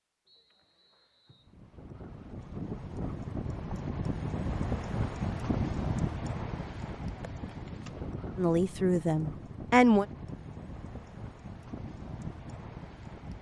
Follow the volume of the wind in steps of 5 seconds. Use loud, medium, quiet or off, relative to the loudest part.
loud, loud, medium.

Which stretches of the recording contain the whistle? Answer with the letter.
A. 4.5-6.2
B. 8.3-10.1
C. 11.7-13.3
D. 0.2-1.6
D.